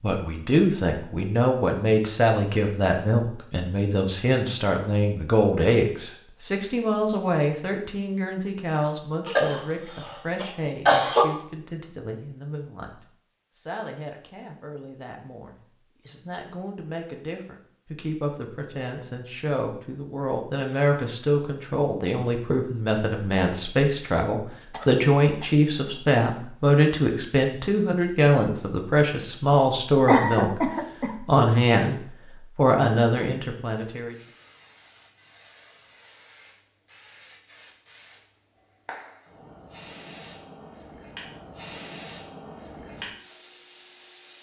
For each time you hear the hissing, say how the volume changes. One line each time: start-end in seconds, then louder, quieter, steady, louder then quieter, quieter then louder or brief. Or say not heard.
34.1-44.3 louder.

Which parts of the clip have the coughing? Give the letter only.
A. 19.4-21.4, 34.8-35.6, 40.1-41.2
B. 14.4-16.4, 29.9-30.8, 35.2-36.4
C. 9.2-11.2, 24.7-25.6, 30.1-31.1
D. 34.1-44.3
C.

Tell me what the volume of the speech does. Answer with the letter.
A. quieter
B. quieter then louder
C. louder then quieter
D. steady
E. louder
B.